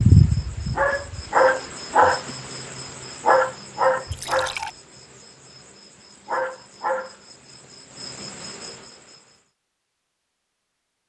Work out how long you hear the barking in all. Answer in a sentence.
You can't hear the barking here.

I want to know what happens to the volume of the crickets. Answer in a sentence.
The volume of the crickets goes down.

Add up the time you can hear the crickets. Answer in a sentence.
You can hear the crickets for 9 seconds altogether.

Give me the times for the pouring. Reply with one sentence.
You can hear the pouring from 4.1 to 4.8 s.